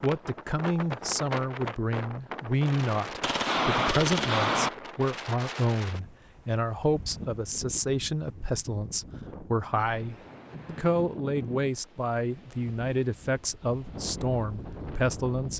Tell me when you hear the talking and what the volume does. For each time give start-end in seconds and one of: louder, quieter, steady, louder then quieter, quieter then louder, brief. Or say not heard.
0.0-15.5 steady.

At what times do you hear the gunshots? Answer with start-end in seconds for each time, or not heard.
3.2-4.7.